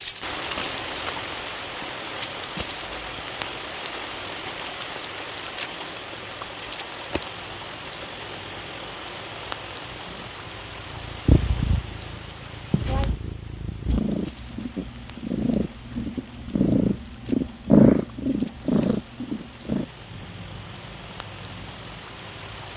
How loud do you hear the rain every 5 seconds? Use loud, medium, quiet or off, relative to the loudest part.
loud, loud, medium, quiet, medium.